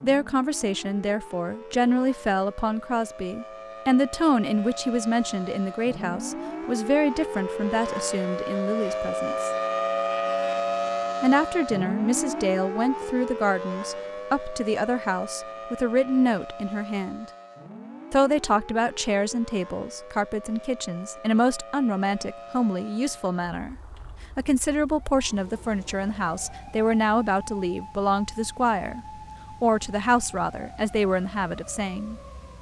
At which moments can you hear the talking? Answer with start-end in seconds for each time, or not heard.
0.0-9.5, 11.2-17.2, 18.1-23.8, 24.4-29.0, 29.6-32.1.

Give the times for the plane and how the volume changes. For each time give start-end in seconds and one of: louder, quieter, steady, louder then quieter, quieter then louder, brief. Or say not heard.
not heard.